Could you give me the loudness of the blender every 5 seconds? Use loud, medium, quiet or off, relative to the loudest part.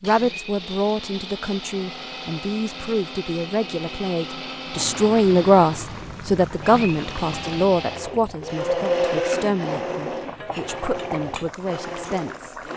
medium, loud, medium.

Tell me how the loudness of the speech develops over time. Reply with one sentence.
The volume of the speech goes up, then down.